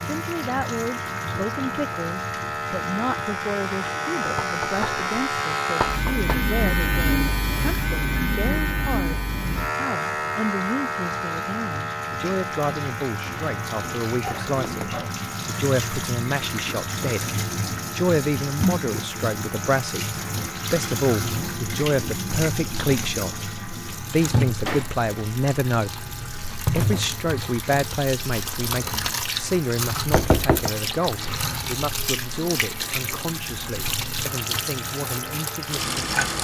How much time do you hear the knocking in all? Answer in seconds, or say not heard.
2 s.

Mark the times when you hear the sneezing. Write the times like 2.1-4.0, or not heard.
14.2-15.1.